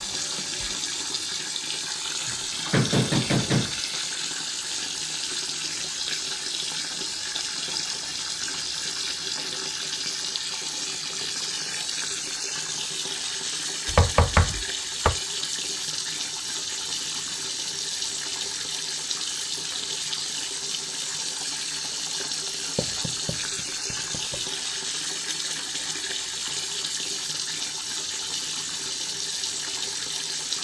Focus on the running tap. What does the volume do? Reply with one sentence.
The loudness of the running tap stays about the same.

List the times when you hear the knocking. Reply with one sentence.
The knocking can be heard from 2.2 to 3.8 s, from 13.8 to 15.2 s and from 22.8 to 24.4 s.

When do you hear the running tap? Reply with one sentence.
The running tap can be heard from 0.0 to 30.5 s.